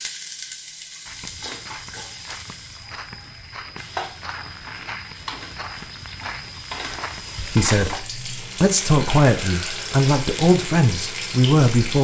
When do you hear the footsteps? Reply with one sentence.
You can hear the footsteps from 1.1 to 8.0 s.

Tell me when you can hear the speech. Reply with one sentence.
The speech can be heard from 7.5 to 11.9 s.